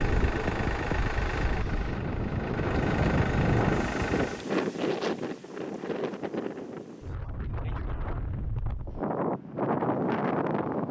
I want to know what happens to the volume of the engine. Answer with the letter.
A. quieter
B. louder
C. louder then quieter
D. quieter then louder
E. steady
D.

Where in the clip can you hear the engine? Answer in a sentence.
The engine can be heard from 0.0 to 4.5 s.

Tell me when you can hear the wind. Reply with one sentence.
The wind can be heard from 0.0 to 10.8 s.